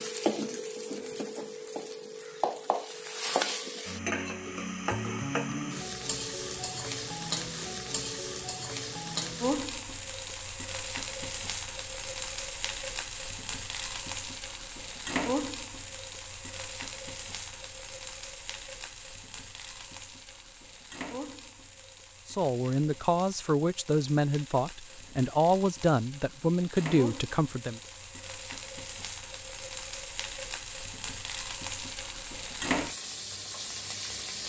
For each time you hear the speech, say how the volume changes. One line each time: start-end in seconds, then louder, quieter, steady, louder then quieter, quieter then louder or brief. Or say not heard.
22.2-27.8 steady.